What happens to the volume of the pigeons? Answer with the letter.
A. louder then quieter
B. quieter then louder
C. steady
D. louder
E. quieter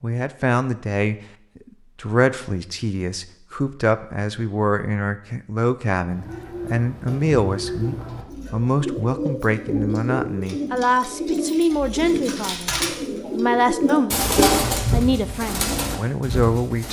D.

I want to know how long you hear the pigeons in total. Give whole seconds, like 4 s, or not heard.
11 s.